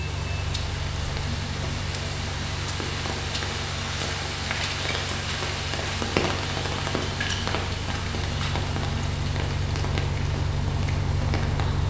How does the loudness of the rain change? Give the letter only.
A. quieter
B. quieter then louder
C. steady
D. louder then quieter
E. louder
D.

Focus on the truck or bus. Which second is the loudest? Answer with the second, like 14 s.
11 s.